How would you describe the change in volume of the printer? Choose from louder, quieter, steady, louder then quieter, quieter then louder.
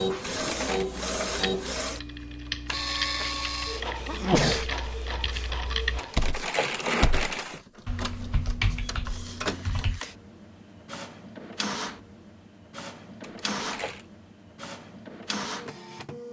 quieter.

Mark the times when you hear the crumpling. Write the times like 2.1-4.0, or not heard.
0.3-0.8, 6.0-7.6, 13.2-14.1.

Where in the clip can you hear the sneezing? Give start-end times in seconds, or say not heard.
4.0-5.5.